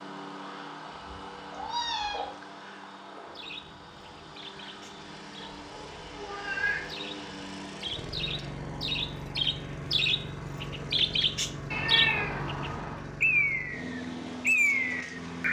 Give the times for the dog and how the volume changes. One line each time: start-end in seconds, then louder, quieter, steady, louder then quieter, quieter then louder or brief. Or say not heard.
not heard.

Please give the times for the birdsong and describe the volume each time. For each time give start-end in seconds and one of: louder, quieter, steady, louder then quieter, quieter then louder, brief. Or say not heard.
3.4-15.4 louder.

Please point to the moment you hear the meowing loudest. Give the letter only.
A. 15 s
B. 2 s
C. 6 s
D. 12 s
D.